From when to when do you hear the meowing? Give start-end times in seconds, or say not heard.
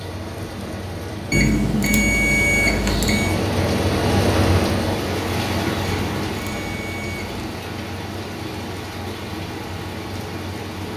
not heard.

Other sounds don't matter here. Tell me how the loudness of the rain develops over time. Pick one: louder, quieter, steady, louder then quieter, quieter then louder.
louder then quieter.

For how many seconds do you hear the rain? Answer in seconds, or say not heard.
11 s.